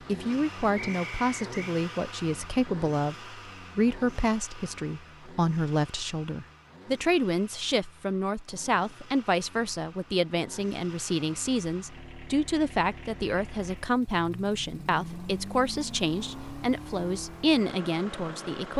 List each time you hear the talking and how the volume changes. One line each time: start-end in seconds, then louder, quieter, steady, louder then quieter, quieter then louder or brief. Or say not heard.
0.1-18.7 steady.